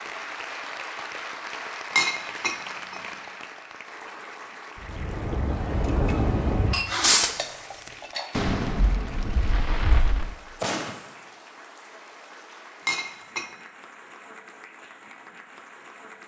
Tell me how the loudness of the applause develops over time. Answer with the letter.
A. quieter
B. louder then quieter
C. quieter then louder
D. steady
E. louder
A.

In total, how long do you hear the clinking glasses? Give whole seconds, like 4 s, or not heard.
3 s.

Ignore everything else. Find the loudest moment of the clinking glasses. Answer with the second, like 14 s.
2 s.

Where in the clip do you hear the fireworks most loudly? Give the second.
7 s.